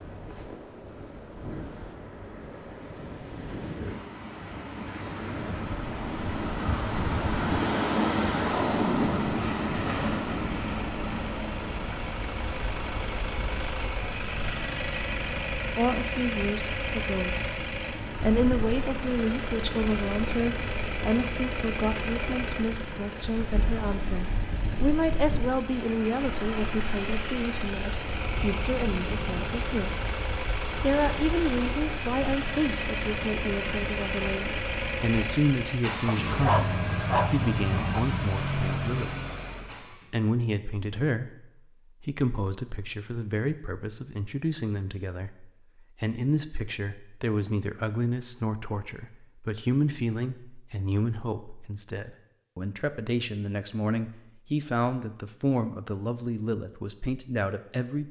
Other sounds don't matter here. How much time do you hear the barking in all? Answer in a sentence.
You can hear the barking for 2 seconds altogether.